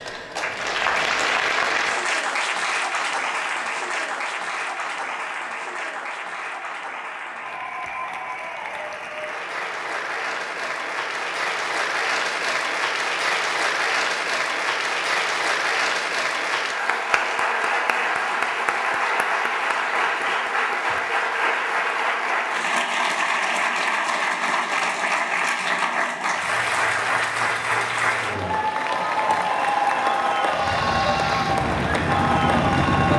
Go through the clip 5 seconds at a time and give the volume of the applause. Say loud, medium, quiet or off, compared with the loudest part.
loud, medium, loud, loud, loud, loud, loud.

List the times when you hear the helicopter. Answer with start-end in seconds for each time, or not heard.
30.4-33.1.